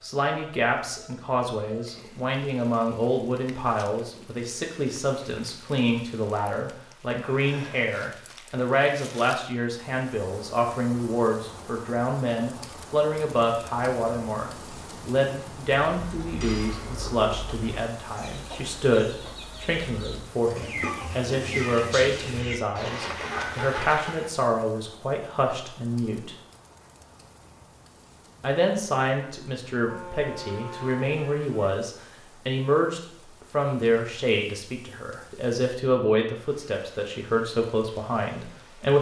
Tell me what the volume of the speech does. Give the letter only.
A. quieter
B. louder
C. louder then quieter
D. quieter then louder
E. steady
E.